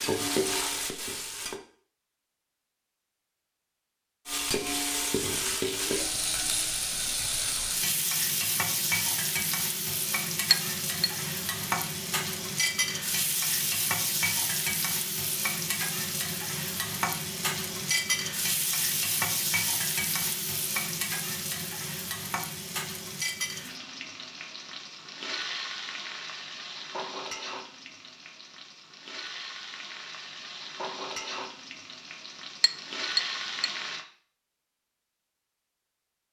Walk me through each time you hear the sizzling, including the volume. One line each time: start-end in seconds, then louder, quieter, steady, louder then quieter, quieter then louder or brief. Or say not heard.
0.0-1.6 brief
4.2-34.0 quieter.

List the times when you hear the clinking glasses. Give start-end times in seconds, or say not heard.
10.5-11.1, 32.6-33.7.